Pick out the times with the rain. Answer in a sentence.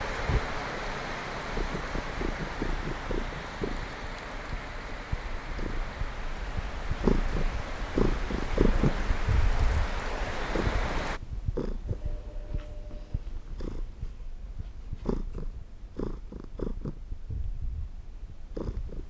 The rain can be heard from 0.0 to 11.2 s.